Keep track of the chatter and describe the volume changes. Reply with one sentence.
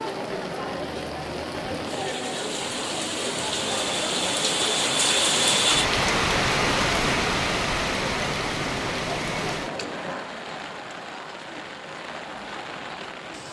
The loudness of the chatter goes down.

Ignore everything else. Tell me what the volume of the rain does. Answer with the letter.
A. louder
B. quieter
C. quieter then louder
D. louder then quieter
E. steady
D.